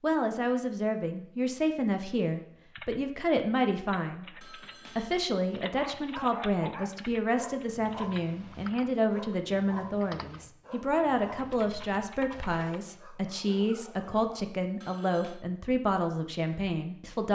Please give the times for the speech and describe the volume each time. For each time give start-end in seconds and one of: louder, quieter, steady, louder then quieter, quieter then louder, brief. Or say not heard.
0.0-17.2 steady.